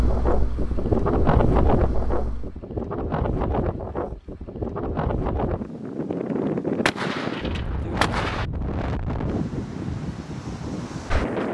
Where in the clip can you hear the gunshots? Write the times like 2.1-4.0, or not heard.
6.8-8.4.